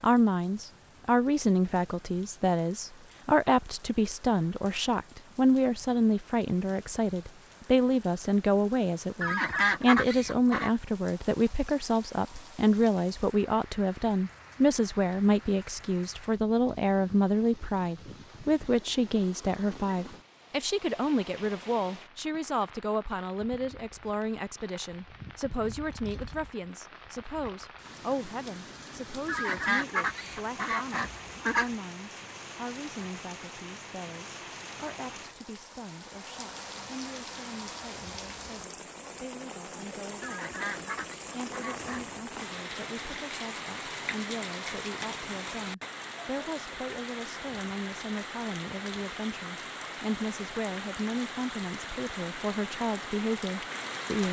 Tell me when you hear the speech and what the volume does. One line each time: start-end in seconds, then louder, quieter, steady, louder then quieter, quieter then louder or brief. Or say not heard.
0.0-54.2 quieter then louder.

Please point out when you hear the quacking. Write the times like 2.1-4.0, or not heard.
9.2-10.7, 29.2-31.7, 40.2-42.0.